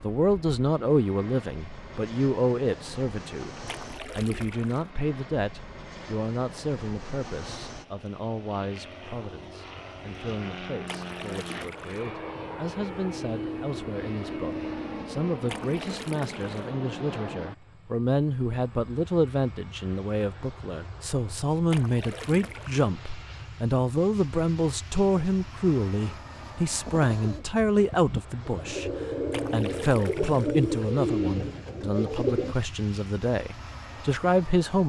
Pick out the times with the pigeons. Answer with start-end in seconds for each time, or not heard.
26.9-32.5.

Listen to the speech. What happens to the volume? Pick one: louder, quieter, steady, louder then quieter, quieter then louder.
quieter then louder.